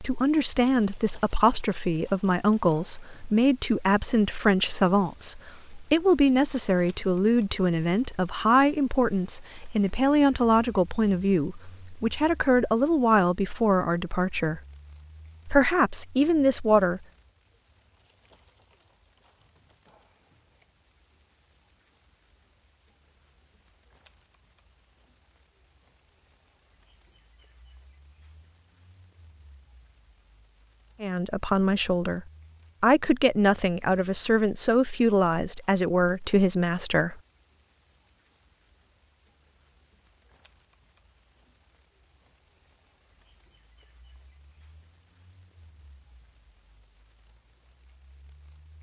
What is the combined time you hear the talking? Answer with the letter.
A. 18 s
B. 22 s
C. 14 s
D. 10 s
B.